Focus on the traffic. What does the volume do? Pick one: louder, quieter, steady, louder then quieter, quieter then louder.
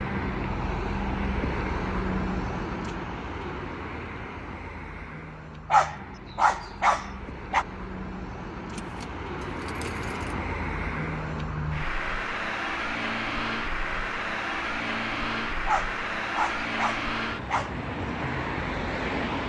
quieter then louder.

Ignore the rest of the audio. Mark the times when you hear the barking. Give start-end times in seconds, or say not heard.
5.7-7.7, 15.7-17.7.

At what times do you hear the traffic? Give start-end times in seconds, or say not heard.
0.0-19.4.